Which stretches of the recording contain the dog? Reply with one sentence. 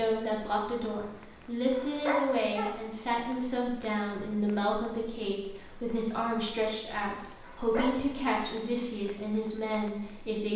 The dog can be heard from 1.8 to 2.8 s and from 7.4 to 8.4 s.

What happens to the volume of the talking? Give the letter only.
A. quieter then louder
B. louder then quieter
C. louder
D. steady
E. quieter
D.